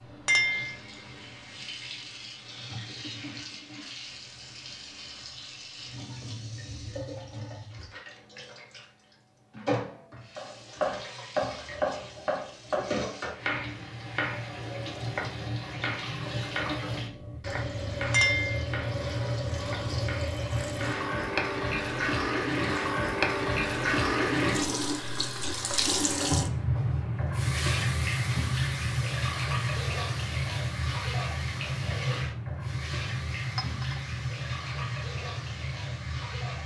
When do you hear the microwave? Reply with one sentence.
You can't hear the microwave here.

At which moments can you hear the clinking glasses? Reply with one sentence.
The clinking glasses can be heard from 0.2 to 0.8 s, from 18.1 to 18.6 s and from 33.5 to 34.0 s.